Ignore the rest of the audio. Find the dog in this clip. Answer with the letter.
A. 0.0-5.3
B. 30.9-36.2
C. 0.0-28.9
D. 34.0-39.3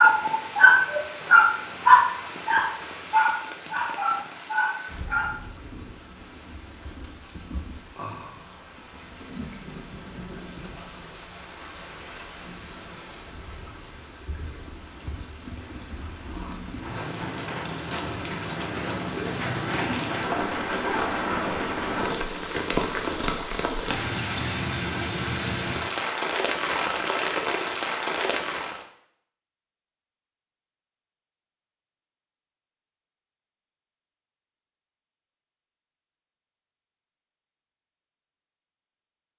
A.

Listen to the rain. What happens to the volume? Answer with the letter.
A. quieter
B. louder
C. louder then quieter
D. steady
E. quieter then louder
B.